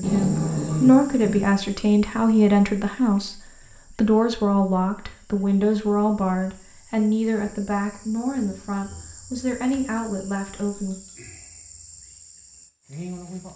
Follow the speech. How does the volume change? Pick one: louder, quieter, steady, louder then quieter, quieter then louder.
quieter.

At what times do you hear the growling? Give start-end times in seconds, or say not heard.
0.0-1.4.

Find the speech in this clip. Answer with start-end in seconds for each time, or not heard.
0.0-10.9.